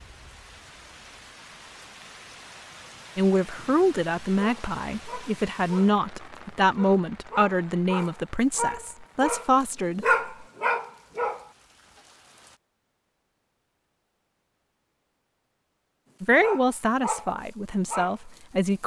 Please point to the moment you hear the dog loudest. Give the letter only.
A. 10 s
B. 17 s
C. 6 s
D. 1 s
A.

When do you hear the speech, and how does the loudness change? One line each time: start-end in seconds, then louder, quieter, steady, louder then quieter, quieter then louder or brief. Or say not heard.
3.1-10.2 steady
16.2-18.8 brief.